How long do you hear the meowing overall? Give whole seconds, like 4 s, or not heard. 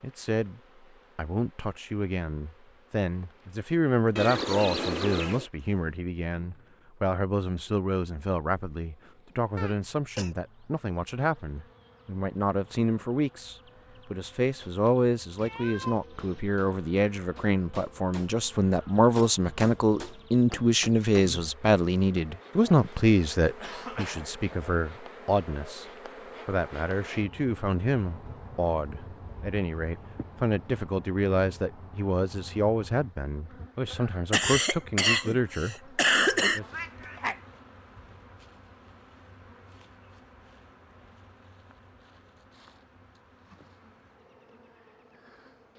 3 s.